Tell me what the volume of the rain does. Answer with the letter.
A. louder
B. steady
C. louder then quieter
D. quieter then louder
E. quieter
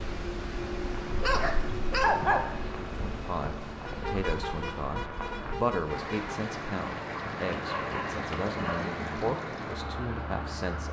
A.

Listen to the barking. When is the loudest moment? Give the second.
2 s.